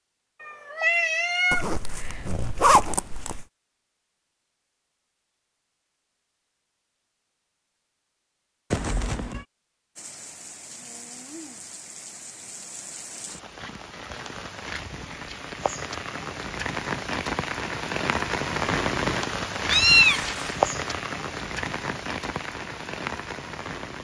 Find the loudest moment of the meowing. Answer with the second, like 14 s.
20 s.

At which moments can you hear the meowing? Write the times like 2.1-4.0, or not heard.
0.4-2.2, 8.7-9.4, 19.7-20.6.